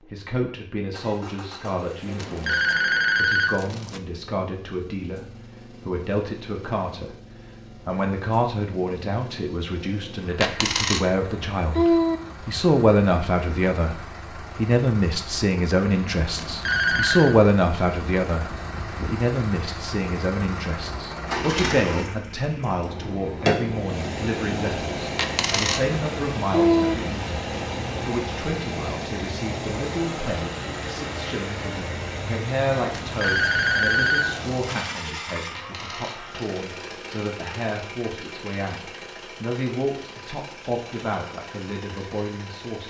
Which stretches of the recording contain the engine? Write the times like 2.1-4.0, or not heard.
0.0-42.8.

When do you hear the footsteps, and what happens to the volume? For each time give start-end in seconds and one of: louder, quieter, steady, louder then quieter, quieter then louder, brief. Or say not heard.
not heard.